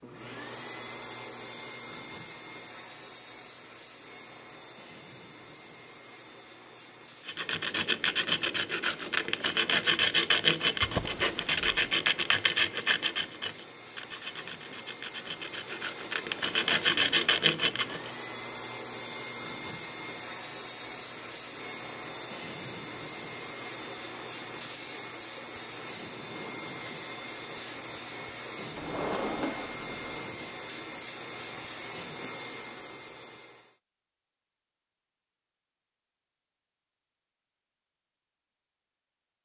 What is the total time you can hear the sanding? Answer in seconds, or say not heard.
11 s.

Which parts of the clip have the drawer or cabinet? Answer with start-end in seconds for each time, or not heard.
10.8-11.6, 28.8-30.2.